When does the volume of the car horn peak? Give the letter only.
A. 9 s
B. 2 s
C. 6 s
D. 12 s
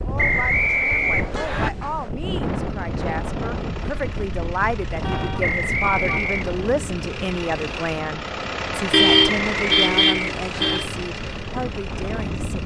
A.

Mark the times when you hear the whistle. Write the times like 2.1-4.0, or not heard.
0.1-1.7, 5.4-6.5, 9.5-10.8.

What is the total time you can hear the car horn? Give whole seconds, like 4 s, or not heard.
4 s.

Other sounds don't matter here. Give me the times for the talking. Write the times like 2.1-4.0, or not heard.
0.0-12.6.